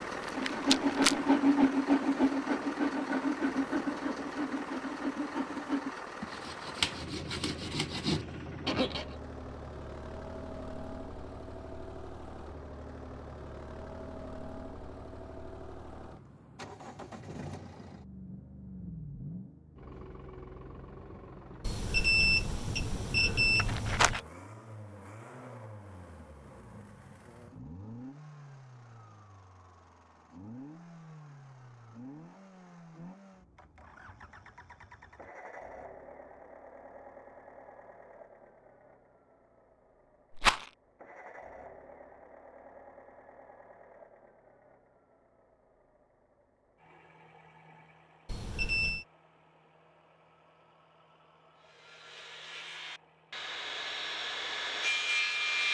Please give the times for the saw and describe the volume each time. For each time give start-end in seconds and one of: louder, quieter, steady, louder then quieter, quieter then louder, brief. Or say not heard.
0.3-9.2 quieter
51.6-55.6 louder.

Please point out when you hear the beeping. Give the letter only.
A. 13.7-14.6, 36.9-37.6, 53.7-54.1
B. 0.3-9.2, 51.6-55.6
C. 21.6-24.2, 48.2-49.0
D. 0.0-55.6
C.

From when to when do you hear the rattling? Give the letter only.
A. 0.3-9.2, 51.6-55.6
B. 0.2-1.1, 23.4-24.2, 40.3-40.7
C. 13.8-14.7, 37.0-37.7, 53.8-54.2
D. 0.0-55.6
B.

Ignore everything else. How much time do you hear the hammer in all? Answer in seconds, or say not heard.
not heard.